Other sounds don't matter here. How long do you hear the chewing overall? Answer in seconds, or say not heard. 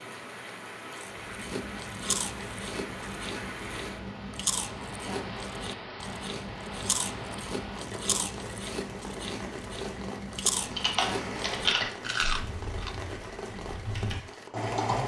12 s.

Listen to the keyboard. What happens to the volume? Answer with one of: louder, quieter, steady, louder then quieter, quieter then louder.
quieter then louder.